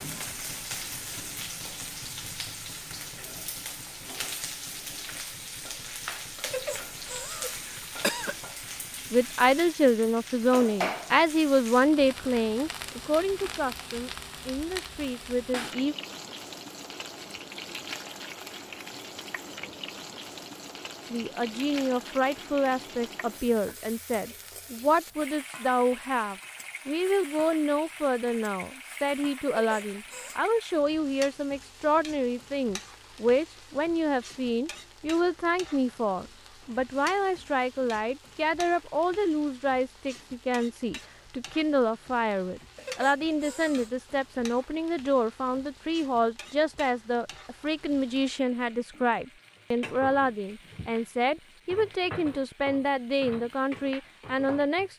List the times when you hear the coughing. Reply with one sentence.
The coughing can be heard from 6.4 to 8.3 s, from 29.5 to 30.4 s and from 42.8 to 44.0 s.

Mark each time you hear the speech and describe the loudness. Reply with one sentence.
The speech can be heard from 9.1 to 15.9 s, getting quieter; and from 21.1 to 54.9 s, at a steady volume.